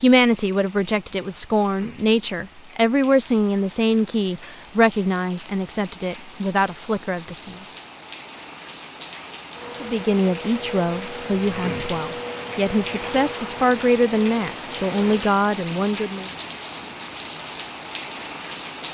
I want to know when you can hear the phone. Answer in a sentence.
The phone can't be heard in this clip.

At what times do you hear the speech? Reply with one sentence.
The speech can be heard from 0.0 to 7.5 s and from 9.8 to 16.3 s.